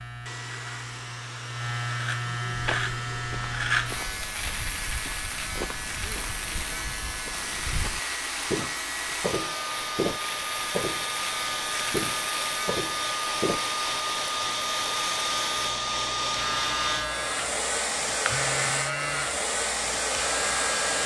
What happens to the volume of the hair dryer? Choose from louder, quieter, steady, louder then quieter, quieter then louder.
louder.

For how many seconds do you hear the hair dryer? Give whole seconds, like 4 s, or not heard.
21 s.